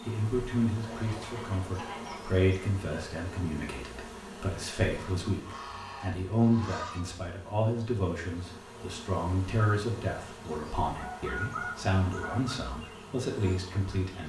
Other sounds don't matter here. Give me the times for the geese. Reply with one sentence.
You can hear the geese from 0.8 to 2.4 s, from 4.9 to 7.0 s and from 10.9 to 12.7 s.